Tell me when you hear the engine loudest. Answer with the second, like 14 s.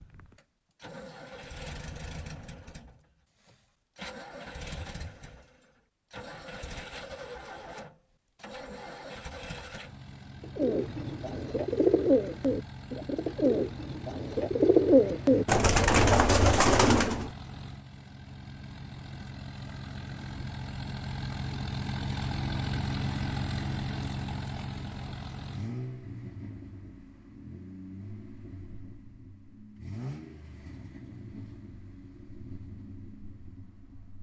23 s.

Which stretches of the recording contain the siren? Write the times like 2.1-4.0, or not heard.
not heard.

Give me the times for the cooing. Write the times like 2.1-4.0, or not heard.
10.6-17.3.